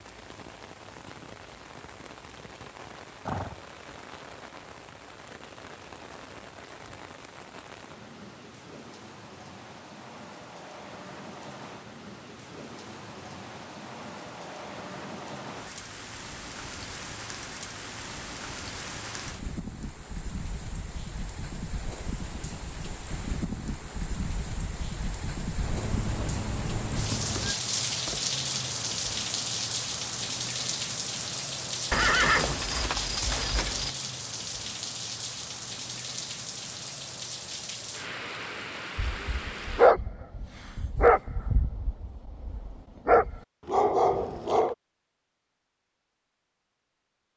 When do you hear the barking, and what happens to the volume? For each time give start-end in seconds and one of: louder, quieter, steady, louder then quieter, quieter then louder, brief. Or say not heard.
39.0-44.8 quieter then louder.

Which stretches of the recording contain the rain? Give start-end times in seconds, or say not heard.
0.0-39.9.